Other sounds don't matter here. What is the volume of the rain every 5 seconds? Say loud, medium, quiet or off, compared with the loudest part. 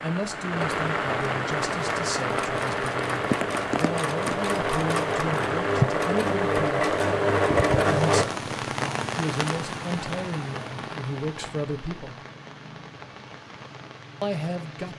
loud, loud, medium.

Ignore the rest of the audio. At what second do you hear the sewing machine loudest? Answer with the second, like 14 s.
8 s.